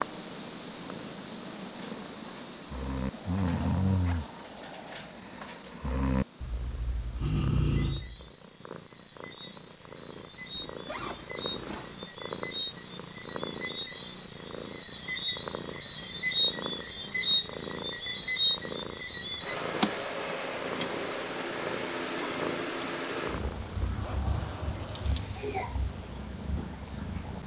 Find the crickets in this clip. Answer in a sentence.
You can hear the crickets from 0.0 to 27.4 s.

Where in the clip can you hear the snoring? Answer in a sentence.
You can hear the snoring from 1.6 to 8.3 s.